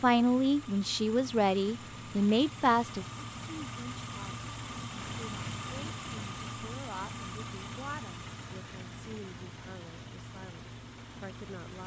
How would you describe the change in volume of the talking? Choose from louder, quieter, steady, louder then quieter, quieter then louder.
quieter.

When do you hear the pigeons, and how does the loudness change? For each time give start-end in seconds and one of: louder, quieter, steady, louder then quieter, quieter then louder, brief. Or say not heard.
not heard.